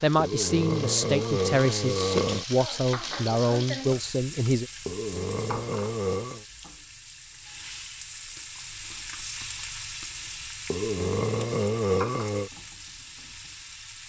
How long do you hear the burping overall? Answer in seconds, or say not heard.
6 s.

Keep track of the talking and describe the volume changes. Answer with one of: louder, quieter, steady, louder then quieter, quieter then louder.
steady.